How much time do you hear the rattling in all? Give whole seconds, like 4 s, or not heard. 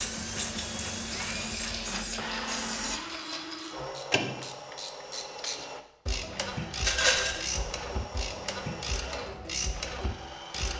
3 s.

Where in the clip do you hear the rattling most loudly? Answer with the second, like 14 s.
7 s.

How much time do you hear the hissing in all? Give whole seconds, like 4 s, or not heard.
3 s.